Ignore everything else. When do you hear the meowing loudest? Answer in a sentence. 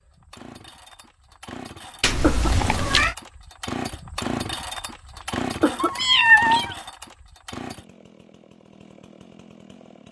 The loudest moment of the meowing is at 6 seconds.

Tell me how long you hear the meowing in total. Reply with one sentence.
You can hear the meowing for 2 seconds altogether.